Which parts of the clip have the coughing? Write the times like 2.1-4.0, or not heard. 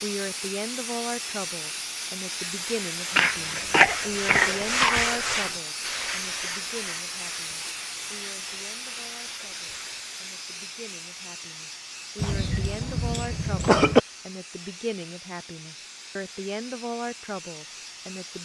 3.1-5.0, 12.2-14.0.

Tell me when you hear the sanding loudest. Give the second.
5 s.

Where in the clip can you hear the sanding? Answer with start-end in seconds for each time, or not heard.
2.4-10.1.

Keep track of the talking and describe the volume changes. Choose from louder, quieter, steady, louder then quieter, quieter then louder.
quieter then louder.